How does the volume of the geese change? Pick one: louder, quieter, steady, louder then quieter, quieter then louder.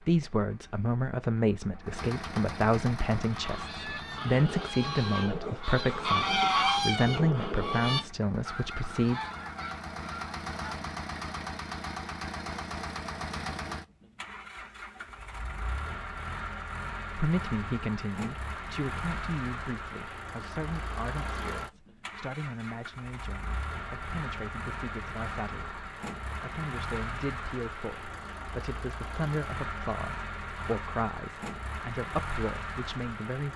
louder then quieter.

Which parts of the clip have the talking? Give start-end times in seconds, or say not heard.
0.1-9.2, 17.1-33.5.